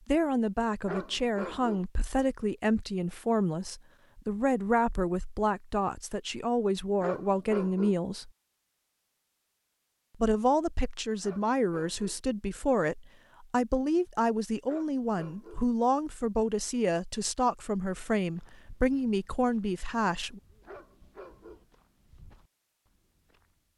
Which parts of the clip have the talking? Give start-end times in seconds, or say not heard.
0.1-8.3, 10.2-20.4.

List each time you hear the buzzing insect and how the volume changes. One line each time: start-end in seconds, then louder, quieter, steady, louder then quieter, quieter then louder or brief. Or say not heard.
not heard.